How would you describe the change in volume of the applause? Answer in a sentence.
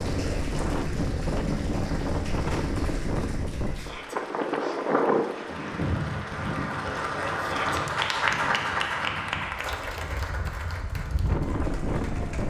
The volume of the applause goes up, then down.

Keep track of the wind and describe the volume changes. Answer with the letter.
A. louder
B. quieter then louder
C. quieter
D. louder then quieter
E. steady
B.